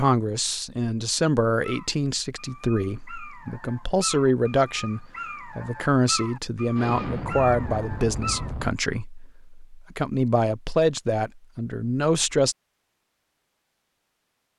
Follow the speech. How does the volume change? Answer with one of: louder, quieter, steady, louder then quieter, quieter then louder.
steady.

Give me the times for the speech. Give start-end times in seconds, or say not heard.
0.0-12.6.